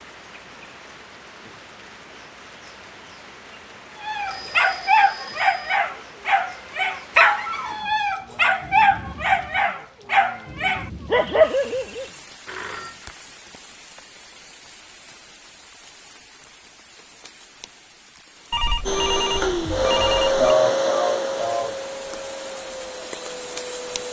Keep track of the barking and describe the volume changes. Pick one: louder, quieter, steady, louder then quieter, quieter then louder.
steady.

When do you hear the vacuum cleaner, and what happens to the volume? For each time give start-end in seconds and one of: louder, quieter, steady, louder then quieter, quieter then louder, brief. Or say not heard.
18.9-24.0 quieter.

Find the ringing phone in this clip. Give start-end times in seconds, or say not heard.
4.2-5.8, 12.4-13.1, 18.5-20.4.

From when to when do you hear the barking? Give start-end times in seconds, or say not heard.
4.0-12.1.